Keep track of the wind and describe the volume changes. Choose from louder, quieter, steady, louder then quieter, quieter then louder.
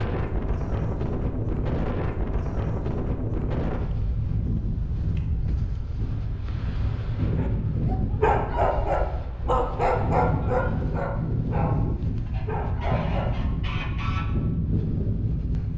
steady.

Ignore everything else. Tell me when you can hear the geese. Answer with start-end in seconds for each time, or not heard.
12.2-14.2.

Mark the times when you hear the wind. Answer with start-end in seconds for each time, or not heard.
0.0-15.7.